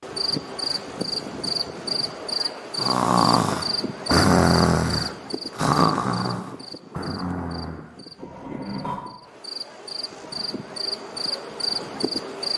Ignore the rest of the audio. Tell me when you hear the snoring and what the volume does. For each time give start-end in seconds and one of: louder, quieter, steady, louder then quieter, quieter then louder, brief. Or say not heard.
2.8-9.2 quieter.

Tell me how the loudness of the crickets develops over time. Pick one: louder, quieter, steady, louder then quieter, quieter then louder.
quieter then louder.